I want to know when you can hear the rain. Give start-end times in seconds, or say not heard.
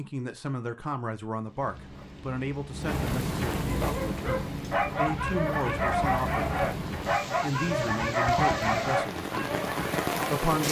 1.4-10.6.